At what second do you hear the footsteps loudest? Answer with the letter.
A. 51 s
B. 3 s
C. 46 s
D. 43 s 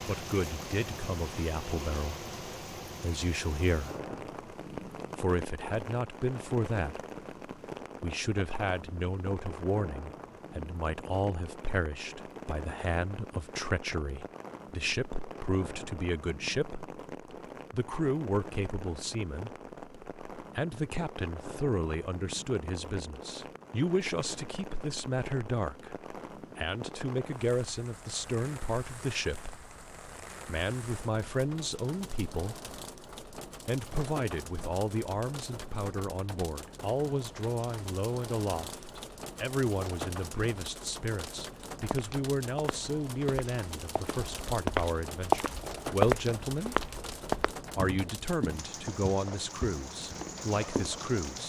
C.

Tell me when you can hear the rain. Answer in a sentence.
You can hear the rain from 0.0 to 51.4 s.